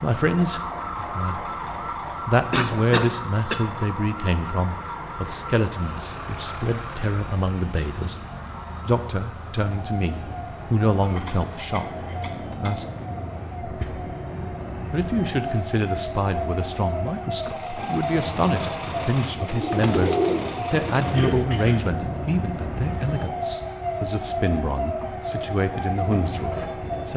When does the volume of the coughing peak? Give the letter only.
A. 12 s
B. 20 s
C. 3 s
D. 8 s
C.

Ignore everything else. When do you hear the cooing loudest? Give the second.
20 s.